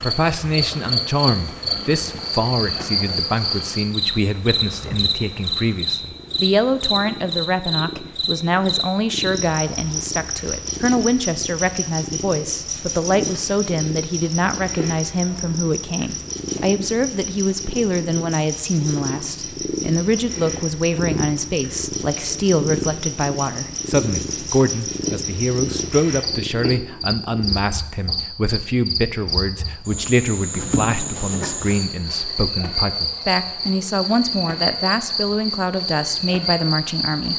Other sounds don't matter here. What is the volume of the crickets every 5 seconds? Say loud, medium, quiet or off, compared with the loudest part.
loud, loud, medium, medium, medium, loud, loud, loud.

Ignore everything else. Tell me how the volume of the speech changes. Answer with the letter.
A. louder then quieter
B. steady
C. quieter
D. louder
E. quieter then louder
B.